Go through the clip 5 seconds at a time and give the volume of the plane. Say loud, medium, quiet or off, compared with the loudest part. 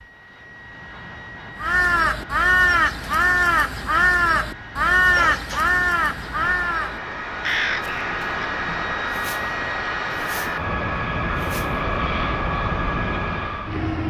quiet, loud, loud.